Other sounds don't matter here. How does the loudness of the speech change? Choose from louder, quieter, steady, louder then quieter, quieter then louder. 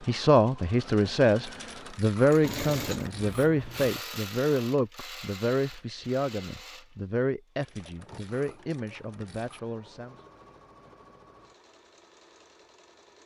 quieter.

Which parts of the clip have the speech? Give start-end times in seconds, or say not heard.
0.1-10.2.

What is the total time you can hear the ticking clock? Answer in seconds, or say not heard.
not heard.